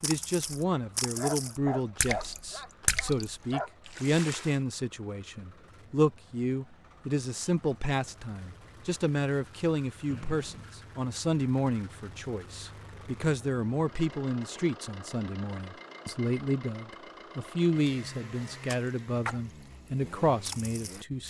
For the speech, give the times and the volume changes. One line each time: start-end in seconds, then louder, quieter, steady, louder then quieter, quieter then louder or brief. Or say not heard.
0.0-21.2 steady.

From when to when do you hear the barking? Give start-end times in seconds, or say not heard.
1.1-3.7.